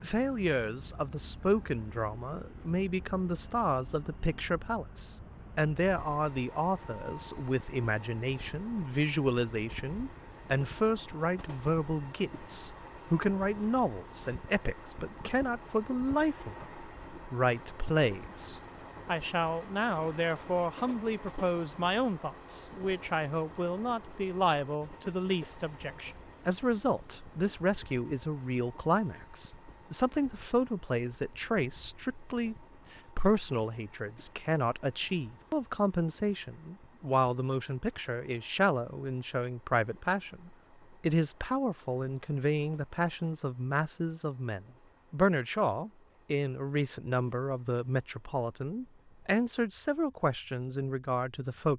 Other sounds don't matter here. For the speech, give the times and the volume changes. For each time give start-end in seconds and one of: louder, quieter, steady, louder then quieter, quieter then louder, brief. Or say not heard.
0.0-51.7 steady.